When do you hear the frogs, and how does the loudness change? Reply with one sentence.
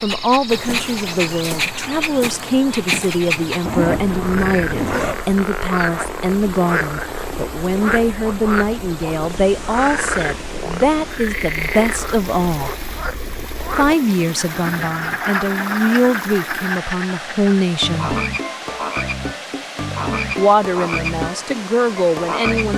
You can hear the frogs from 0.0 to 22.7 s, at a steady volume.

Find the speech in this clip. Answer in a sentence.
You can hear the speech from 0.0 to 12.8 s, from 13.8 to 18.1 s and from 20.4 to 22.7 s.